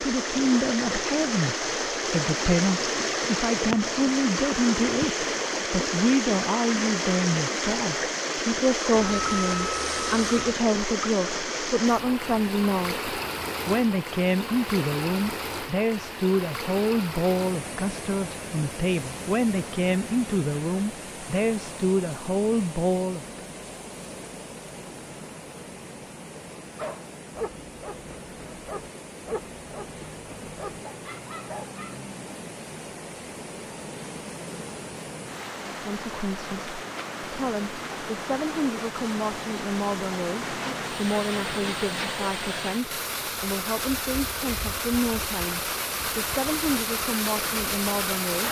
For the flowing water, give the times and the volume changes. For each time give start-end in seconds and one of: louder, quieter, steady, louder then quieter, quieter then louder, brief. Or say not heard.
0.0-48.4 quieter then louder.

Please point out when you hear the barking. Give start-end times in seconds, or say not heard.
26.8-32.0.